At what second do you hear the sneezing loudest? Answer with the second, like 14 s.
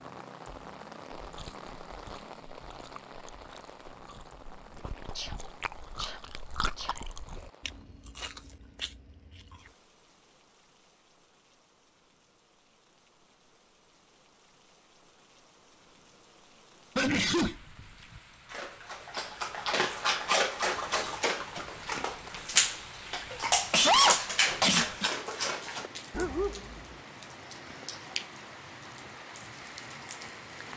24 s.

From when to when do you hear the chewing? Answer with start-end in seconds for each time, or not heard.
1.2-9.8.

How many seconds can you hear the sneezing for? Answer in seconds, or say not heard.
4 s.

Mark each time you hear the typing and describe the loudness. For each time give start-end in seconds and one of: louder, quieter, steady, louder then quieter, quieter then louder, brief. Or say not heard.
not heard.